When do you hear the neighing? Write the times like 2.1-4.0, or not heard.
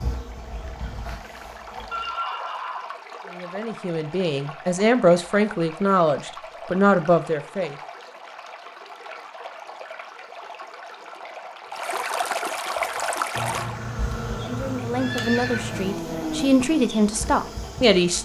1.9-3.0, 13.3-16.1.